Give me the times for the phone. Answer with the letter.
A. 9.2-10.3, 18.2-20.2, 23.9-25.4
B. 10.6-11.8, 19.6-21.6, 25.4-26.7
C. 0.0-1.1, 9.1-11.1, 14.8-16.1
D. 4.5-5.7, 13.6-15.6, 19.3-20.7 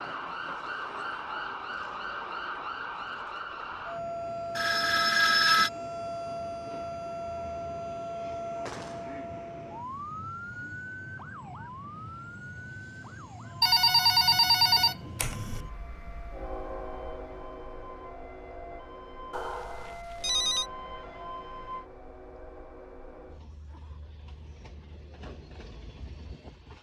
D.